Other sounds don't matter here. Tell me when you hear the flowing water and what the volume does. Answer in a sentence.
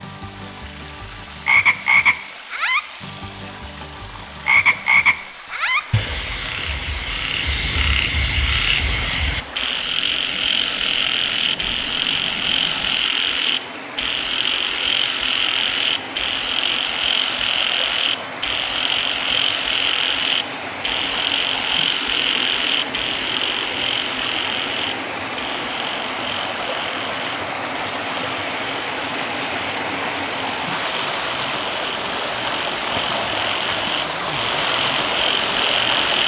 You can hear the flowing water from 0.0 to 36.2 s, getting louder.